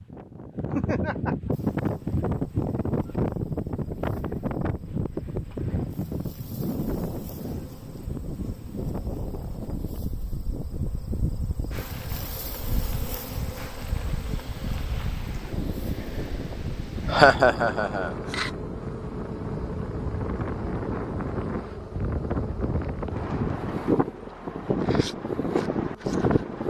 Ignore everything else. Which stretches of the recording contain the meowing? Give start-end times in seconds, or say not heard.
not heard.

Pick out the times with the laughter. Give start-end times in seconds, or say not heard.
0.7-1.4, 17.1-18.1.